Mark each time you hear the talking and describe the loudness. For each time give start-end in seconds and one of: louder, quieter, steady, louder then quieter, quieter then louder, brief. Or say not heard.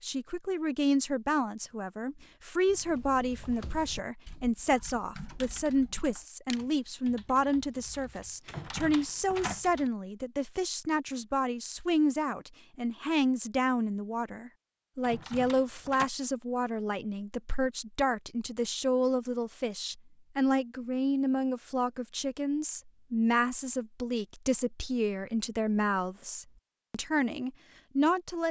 0.0-28.4 steady.